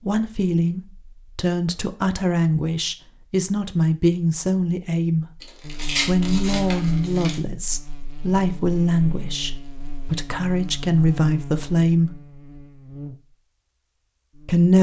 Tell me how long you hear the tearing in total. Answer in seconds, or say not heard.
2 s.